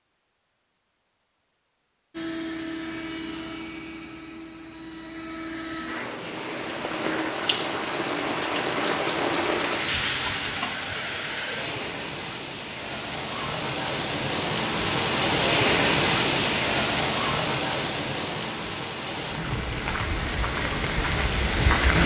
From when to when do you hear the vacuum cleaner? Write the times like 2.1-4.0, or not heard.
2.1-7.3.